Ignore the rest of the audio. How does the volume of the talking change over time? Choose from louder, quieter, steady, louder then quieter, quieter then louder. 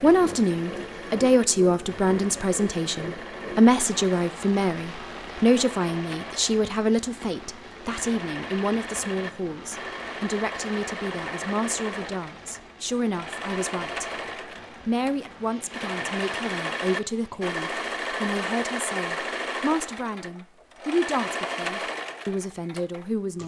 quieter.